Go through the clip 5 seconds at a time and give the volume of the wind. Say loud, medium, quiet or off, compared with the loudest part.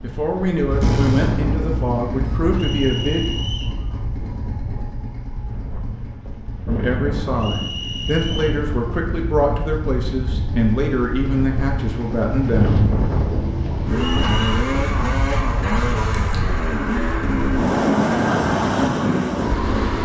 medium, medium, loud, loud.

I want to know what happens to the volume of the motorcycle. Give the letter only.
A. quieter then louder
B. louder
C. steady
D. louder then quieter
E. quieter
A.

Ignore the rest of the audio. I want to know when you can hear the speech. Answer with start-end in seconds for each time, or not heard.
0.0-3.2, 6.7-12.8.